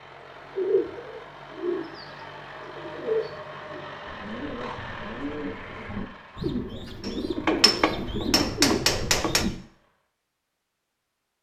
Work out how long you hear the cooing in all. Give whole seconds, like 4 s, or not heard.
9 s.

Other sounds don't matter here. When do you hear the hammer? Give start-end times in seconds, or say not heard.
7.0-9.4.